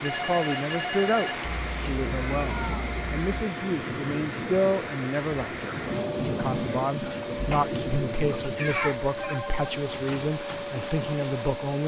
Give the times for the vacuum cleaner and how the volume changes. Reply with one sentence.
You can hear the vacuum cleaner from 0.0 to 11.8 s, at a steady volume.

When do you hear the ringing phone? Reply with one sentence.
You can hear the ringing phone from 0.0 to 1.4 s and from 9.2 to 9.8 s.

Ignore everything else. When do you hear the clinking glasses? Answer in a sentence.
The clinking glasses can't be heard in this clip.